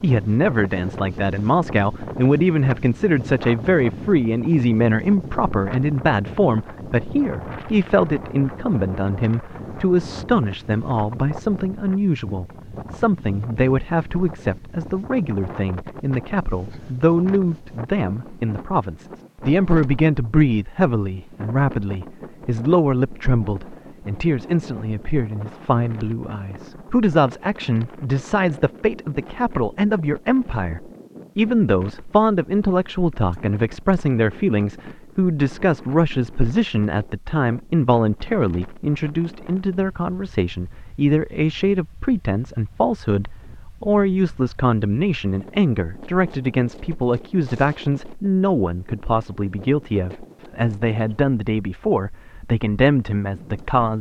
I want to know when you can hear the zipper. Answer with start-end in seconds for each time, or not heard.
not heard.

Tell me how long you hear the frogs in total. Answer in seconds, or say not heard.
not heard.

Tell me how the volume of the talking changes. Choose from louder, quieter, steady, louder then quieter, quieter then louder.
steady.